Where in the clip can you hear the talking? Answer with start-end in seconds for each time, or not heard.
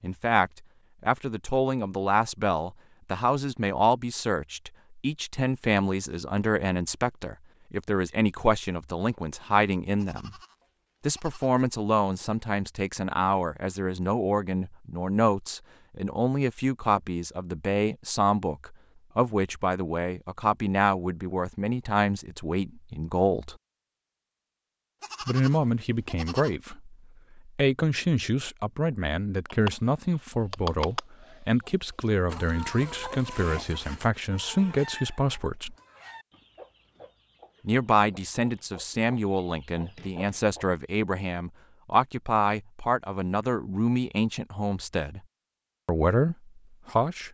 0.0-10.3, 11.1-23.6, 25.2-35.8, 37.6-45.2, 45.9-47.2.